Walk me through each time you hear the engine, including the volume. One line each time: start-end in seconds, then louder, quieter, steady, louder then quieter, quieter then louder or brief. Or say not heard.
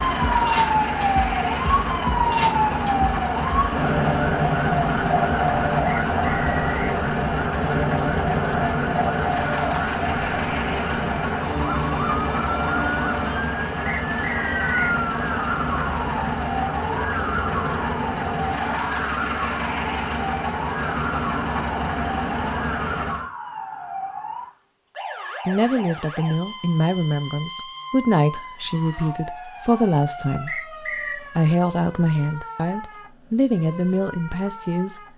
0.0-23.3 steady.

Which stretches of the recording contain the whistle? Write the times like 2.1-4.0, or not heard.
5.8-6.9, 13.8-14.9, 30.4-31.2.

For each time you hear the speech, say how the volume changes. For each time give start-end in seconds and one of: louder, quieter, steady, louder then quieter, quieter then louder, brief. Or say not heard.
25.4-35.0 steady.